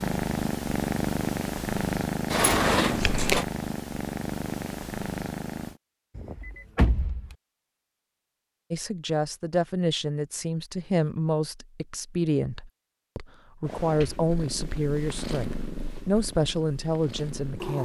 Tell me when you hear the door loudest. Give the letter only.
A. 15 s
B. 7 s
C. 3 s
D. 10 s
C.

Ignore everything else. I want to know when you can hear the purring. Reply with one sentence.
You can hear the purring from 0.0 to 5.8 s and from 13.7 to 17.8 s.